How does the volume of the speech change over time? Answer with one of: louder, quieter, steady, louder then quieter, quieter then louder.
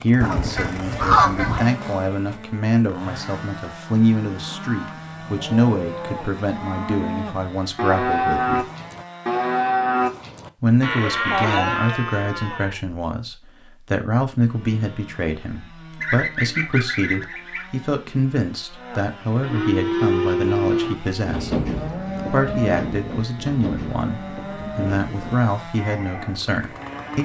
steady.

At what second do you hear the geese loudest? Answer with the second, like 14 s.
1 s.